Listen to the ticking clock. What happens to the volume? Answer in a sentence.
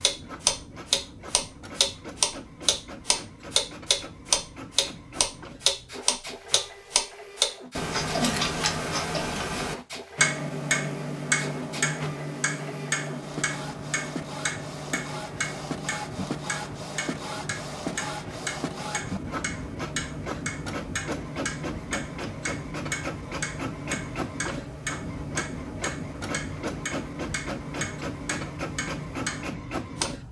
The volume of the ticking clock goes down.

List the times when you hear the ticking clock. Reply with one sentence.
You can hear the ticking clock from 0.0 to 30.1 s.